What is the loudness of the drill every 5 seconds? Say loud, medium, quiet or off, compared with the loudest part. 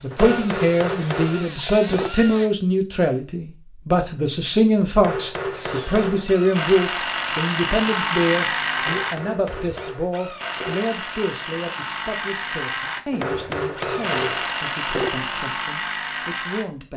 medium, loud, loud, loud.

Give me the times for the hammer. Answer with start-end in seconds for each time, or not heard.
0.1-2.1, 5.0-6.3, 8.8-10.8, 13.1-15.1.